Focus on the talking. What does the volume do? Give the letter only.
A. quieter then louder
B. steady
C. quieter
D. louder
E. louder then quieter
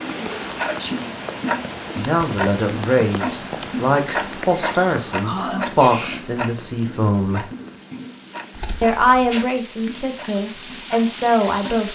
B.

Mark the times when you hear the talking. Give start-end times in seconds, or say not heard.
1.9-7.5, 8.8-11.9.